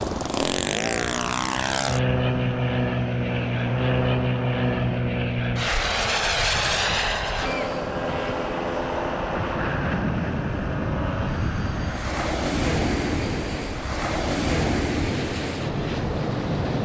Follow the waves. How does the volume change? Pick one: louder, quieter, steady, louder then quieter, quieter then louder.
louder.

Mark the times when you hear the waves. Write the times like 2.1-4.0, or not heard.
0.0-16.8.